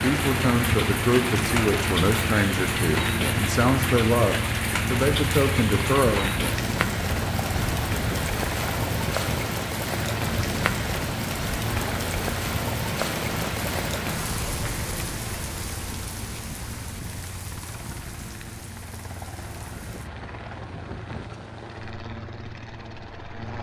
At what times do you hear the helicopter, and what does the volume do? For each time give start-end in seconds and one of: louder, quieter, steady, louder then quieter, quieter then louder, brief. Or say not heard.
0.0-23.5 quieter.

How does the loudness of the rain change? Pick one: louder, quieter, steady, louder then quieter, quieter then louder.
quieter.